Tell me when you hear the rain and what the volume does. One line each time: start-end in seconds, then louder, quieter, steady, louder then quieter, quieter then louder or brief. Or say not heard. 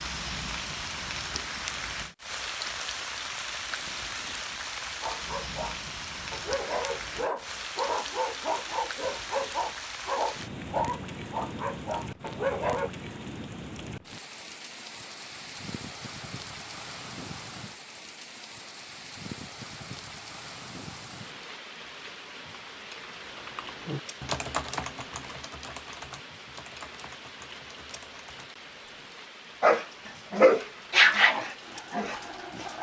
0.0-32.7 quieter.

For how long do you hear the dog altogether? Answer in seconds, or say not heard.
11 s.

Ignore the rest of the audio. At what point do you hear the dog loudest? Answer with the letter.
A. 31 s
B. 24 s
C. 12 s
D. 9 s
A.